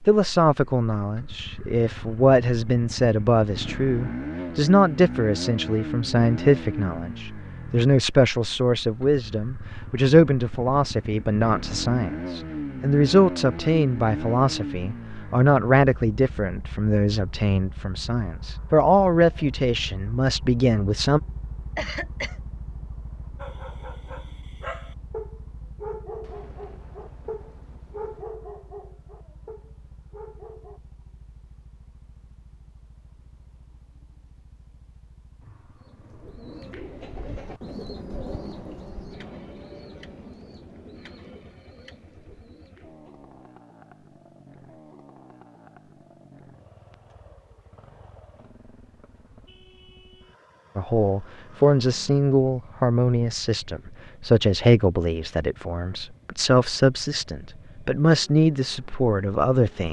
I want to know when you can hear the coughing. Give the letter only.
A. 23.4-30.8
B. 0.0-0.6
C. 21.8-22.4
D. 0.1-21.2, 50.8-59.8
C.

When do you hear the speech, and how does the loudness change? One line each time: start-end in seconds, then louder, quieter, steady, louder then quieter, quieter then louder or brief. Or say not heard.
0.1-21.2 steady
50.8-59.8 steady.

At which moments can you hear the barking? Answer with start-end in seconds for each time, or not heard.
23.4-30.8.